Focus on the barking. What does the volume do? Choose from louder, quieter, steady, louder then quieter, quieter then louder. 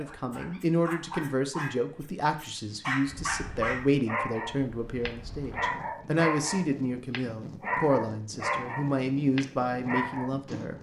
louder.